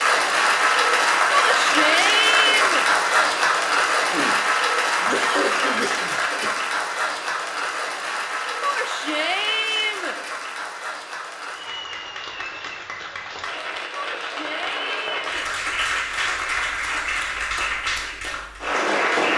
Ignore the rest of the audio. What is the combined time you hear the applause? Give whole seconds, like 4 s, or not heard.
19 s.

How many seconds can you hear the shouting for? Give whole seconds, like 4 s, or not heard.
5 s.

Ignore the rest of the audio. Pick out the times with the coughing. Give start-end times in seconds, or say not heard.
4.0-6.5.